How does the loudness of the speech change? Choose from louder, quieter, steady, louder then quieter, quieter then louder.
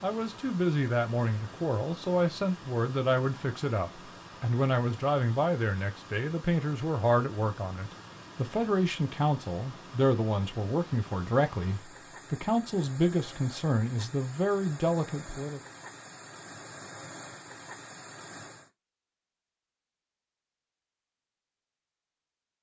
steady.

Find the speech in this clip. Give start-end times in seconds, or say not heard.
0.0-15.6.